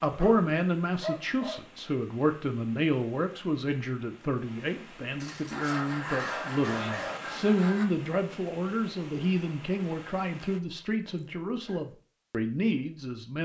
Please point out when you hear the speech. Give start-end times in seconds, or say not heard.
0.0-13.4.